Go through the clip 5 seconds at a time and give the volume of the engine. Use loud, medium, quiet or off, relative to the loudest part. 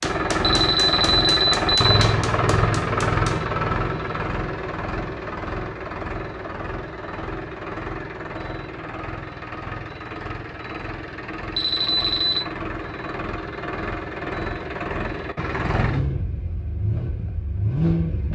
loud, medium, medium, loud.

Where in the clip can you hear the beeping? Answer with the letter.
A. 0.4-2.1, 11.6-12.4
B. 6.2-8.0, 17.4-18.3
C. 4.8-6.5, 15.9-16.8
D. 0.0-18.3
A.